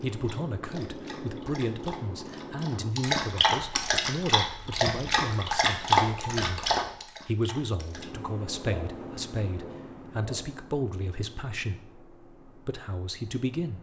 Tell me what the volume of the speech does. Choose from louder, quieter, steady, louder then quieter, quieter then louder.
steady.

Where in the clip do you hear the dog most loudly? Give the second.
6 s.